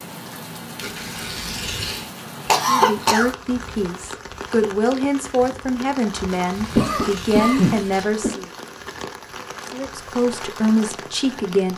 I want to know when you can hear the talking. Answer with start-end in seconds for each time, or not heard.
2.6-8.5, 9.7-11.7.